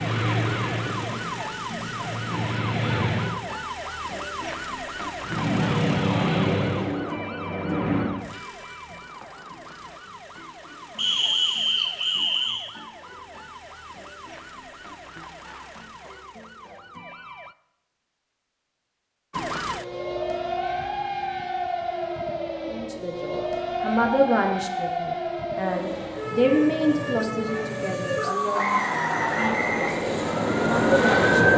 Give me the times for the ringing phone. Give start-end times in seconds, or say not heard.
not heard.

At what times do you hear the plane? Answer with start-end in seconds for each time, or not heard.
0.0-3.4, 5.2-8.2, 25.5-31.5.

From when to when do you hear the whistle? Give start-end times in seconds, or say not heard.
10.9-12.7, 28.6-30.0.